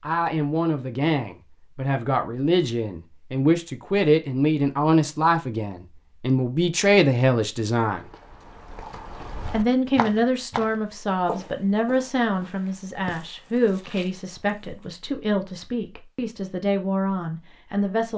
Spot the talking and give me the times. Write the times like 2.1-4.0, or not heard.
0.0-8.1, 9.5-18.1.